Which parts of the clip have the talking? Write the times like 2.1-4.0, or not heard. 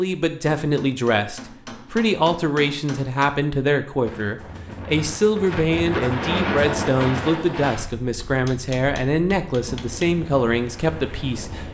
0.0-11.7.